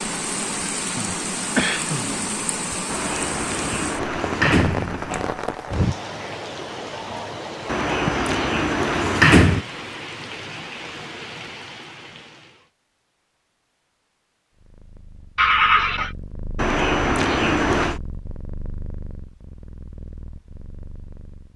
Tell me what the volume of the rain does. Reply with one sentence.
The loudness of the rain goes down.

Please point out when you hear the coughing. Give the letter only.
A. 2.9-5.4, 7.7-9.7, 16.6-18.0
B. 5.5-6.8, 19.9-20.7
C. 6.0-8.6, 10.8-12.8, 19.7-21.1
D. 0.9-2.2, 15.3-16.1
D.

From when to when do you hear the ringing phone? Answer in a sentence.
You can't hear the ringing phone here.